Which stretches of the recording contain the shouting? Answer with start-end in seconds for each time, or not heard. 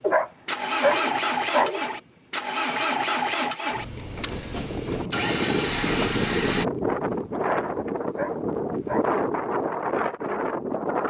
not heard.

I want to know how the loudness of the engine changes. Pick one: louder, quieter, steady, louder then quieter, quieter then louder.
quieter then louder.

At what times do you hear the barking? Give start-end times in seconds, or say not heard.
0.0-1.9, 7.3-9.2.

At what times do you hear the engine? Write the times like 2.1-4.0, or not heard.
0.0-6.7.